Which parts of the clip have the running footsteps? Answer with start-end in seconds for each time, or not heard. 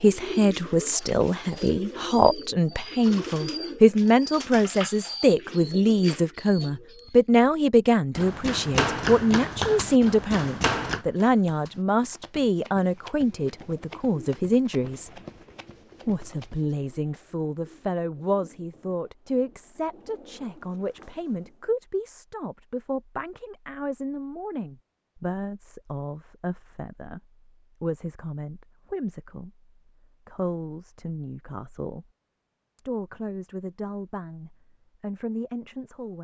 8.2-16.7.